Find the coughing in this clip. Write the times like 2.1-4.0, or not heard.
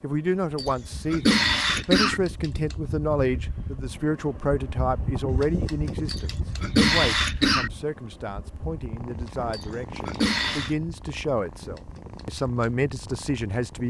0.6-2.2, 6.0-7.7, 9.5-10.8.